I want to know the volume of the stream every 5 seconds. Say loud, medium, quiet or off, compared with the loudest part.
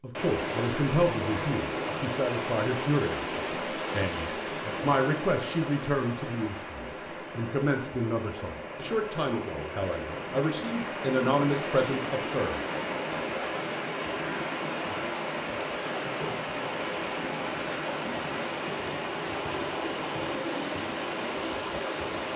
loud, medium, loud, loud, loud.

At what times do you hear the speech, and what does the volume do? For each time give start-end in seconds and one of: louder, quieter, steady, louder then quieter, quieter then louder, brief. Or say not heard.
0.0-12.7 steady.